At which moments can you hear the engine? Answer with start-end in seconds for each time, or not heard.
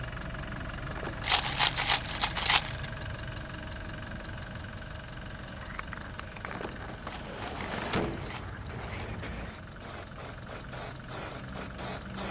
0.0-12.2.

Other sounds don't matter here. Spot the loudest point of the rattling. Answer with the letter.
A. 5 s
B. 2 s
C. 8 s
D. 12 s
B.